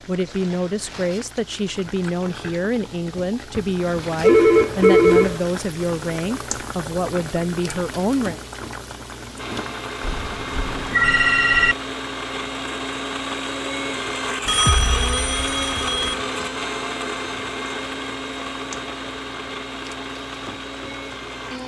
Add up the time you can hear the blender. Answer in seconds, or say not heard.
12 s.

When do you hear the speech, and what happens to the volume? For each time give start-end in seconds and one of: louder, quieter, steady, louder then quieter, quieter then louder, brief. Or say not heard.
0.1-8.3 steady.